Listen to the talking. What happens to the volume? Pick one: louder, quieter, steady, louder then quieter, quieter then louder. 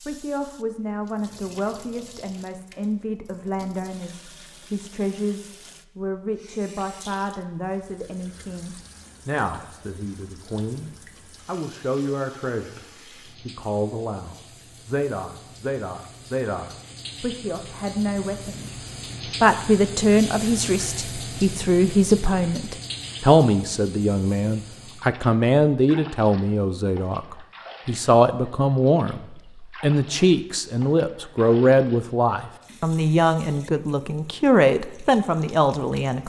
louder.